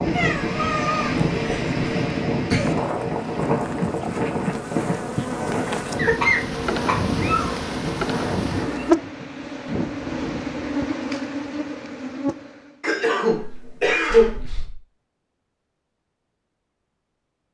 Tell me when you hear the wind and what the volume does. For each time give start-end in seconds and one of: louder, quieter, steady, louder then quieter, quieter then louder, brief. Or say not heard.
0.0-10.8 quieter.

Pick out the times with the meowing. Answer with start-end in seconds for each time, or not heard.
0.1-1.8, 7.1-8.9, 13.3-14.8.